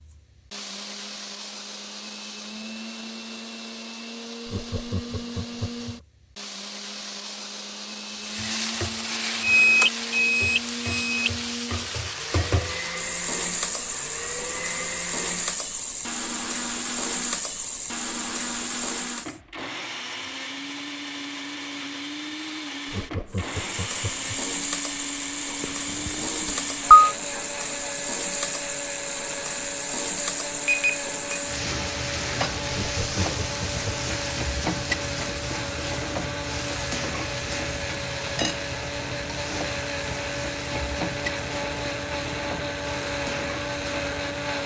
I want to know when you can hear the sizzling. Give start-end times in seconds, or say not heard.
8.1-19.4, 23.3-44.6.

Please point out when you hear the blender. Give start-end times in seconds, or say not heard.
0.0-44.6.